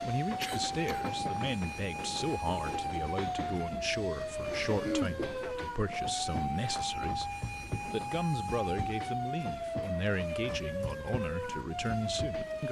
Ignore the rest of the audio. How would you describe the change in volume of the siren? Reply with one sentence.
The volume of the siren stays about the same.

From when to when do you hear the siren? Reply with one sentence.
You can hear the siren from 0.0 to 12.6 s.